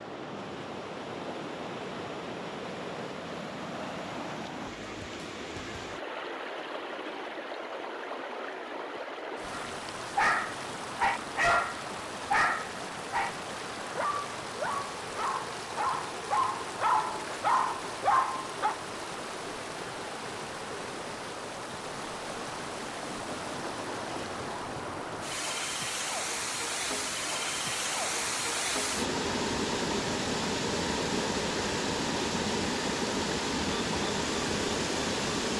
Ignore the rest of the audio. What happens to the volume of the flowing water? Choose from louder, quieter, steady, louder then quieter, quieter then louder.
louder.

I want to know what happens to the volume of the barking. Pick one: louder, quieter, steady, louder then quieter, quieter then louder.
quieter then louder.